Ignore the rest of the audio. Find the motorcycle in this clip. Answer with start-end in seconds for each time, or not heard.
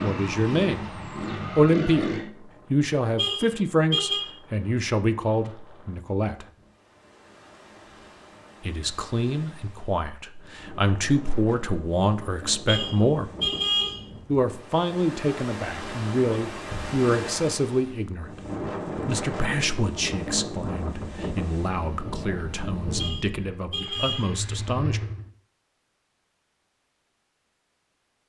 0.0-2.3, 22.9-25.3.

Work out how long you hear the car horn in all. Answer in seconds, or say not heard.
4 s.